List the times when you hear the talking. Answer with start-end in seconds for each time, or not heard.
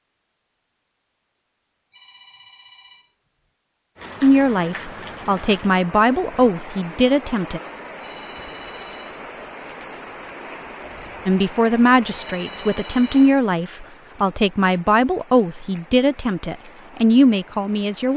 4.2-7.6, 11.2-18.1.